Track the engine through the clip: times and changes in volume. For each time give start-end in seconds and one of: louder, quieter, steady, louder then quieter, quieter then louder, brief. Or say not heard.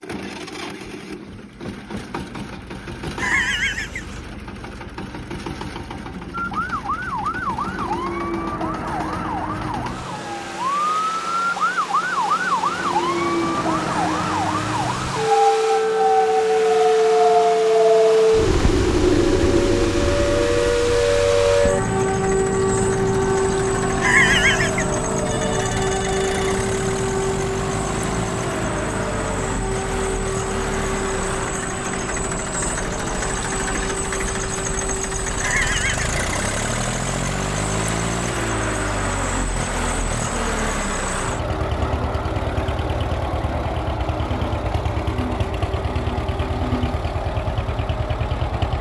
0.0-48.7 louder.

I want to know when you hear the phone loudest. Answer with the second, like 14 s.
24 s.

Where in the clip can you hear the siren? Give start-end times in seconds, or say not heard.
6.3-48.7.